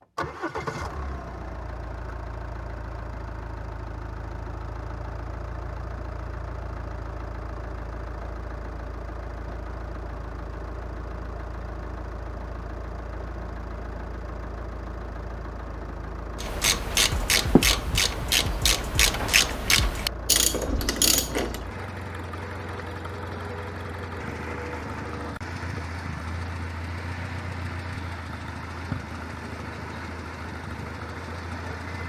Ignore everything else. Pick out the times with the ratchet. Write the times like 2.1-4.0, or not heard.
16.4-21.6.